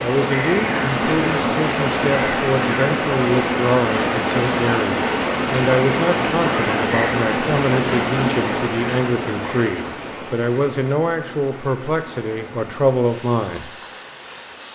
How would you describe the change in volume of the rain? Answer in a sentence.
The loudness of the rain goes down.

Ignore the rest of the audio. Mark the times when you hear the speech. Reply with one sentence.
The speech can be heard from 0.0 to 13.7 s.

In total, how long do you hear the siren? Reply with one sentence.
You can't hear the siren here.